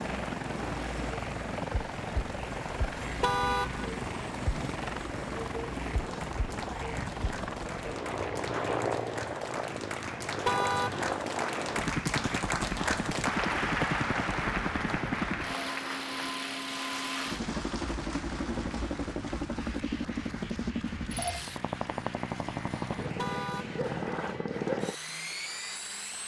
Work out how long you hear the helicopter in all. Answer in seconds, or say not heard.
26 s.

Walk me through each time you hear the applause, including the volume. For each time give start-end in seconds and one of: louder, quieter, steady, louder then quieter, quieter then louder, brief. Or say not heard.
0.1-26.2 louder then quieter.